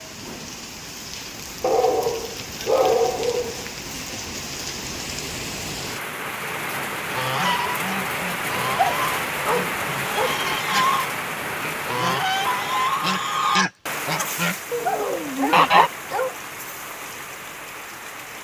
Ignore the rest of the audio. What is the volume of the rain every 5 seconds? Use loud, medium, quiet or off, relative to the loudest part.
medium, loud, loud, medium.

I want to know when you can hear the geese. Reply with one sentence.
The geese can be heard from 7.1 to 15.9 s.